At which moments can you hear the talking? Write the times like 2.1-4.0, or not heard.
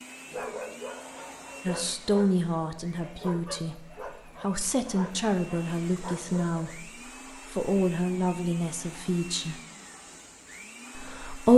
1.6-9.6, 10.9-11.5.